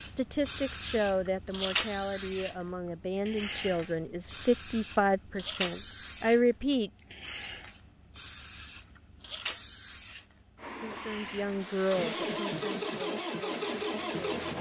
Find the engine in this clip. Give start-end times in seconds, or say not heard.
10.6-14.5.